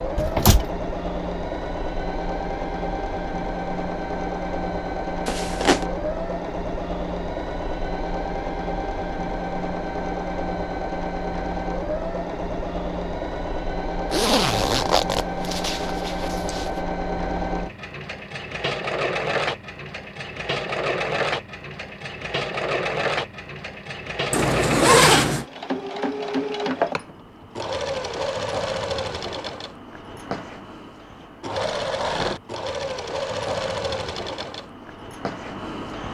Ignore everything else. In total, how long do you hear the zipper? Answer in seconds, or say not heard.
4 s.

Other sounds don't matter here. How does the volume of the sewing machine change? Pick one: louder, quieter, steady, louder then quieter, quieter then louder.
steady.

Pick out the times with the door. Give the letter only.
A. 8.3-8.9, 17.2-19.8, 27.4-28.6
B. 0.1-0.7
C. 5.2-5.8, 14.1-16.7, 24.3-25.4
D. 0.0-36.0
B.